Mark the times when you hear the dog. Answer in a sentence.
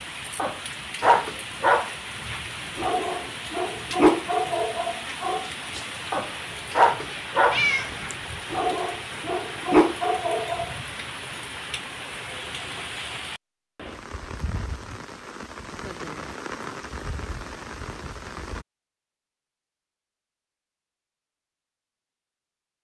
The dog can be heard from 0.3 to 10.8 s.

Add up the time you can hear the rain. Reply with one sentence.
The rain can be heard for 19 seconds in total.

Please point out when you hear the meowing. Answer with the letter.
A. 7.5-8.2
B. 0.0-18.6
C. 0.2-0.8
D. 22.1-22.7
A.